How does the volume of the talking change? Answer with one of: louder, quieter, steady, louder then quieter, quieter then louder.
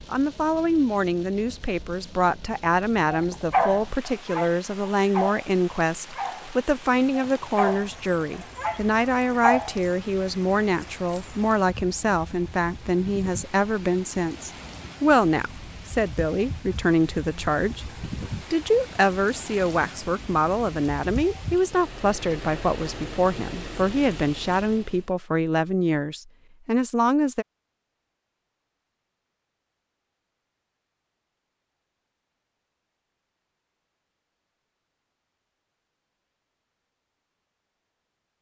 steady.